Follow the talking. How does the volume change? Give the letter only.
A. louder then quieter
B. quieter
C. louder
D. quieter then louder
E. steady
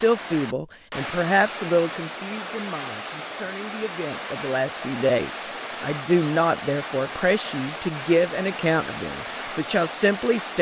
D.